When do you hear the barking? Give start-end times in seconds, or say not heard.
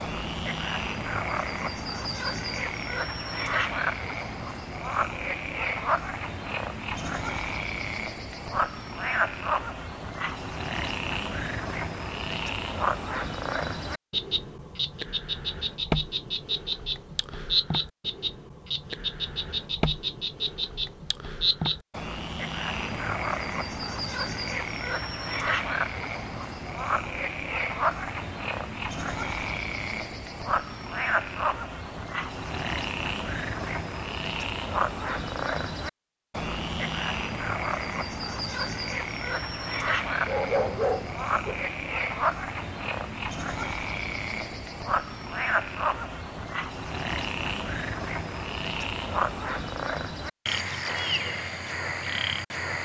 40.2-41.6.